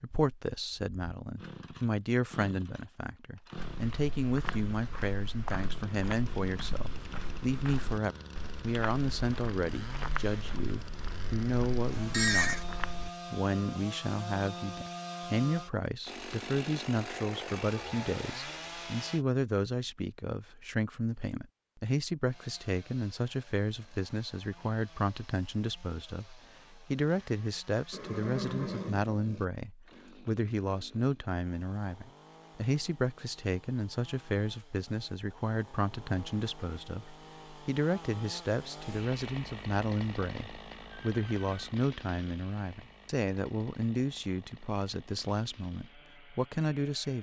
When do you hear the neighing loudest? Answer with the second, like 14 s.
12 s.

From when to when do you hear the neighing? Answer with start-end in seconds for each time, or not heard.
11.9-12.7, 27.9-29.4, 41.0-41.8.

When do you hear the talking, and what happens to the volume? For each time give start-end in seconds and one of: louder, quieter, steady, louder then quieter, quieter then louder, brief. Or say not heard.
0.0-47.1 steady.